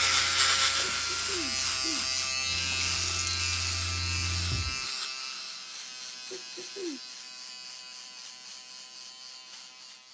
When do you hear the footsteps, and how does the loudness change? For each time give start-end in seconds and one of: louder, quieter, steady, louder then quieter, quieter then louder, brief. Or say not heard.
not heard.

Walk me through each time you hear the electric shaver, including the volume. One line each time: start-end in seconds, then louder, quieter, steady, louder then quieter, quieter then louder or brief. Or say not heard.
0.0-10.1 quieter.